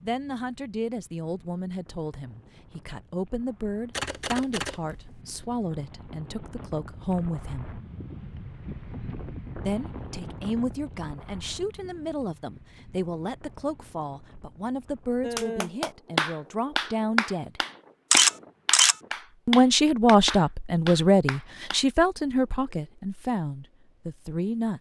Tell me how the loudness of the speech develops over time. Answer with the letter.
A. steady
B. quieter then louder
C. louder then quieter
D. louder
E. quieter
D.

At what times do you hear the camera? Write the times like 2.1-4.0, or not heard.
3.9-5.2, 18.1-18.9.